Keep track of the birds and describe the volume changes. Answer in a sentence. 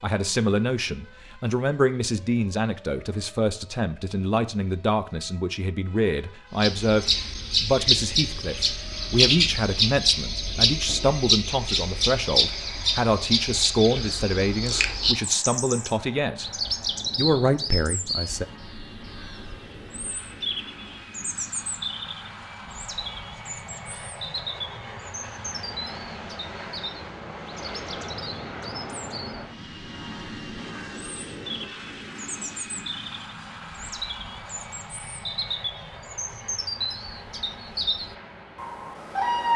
The loudness of the birds goes down, then up.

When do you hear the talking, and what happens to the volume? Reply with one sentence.
You can hear the talking from 0.0 to 16.5 s, at a steady volume; and briefly from 17.1 to 18.4 s.